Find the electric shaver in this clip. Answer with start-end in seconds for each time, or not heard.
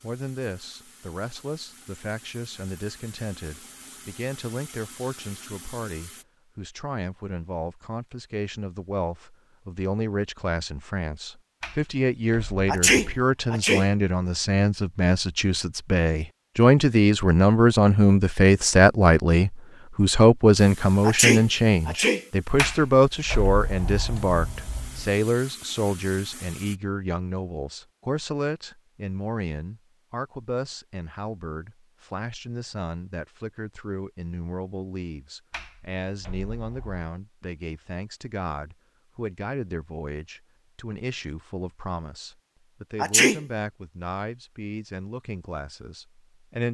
not heard.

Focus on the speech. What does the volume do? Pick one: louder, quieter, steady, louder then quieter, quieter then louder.
louder then quieter.